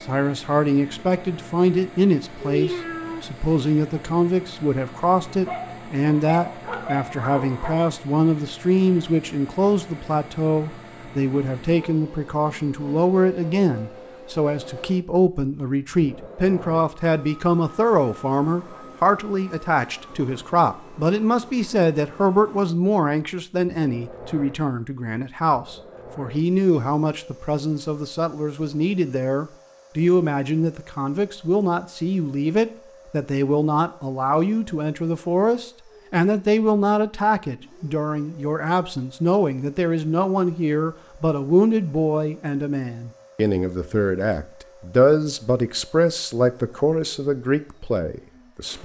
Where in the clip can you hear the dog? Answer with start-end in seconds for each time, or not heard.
5.5-7.9.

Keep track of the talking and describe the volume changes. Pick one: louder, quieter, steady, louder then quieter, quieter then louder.
steady.